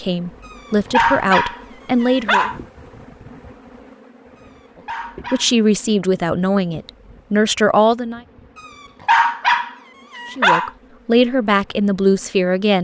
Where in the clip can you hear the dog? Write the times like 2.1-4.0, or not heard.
0.5-2.5, 4.3-5.5, 8.7-10.7.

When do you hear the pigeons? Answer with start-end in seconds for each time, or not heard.
not heard.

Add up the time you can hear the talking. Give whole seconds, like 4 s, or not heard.
8 s.